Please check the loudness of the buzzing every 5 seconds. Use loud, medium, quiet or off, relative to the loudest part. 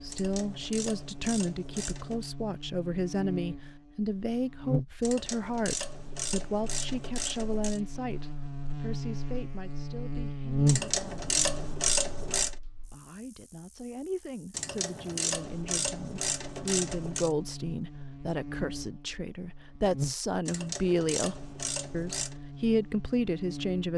medium, medium, loud, medium, medium.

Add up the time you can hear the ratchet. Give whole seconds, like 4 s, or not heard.
12 s.